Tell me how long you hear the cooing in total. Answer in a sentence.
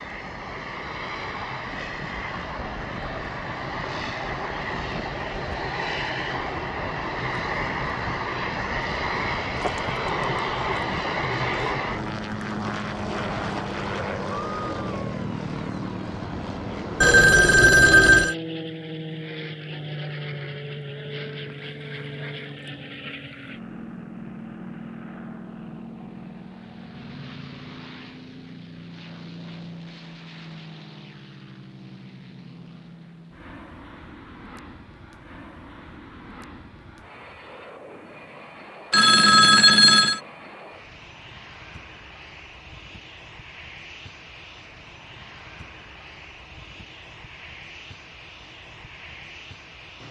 You can't hear the cooing here.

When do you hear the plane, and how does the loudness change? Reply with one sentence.
The plane can be heard from 0.0 to 50.0 s, getting quieter.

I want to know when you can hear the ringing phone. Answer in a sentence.
You can hear the ringing phone from 17.0 to 18.4 s and from 38.9 to 40.2 s.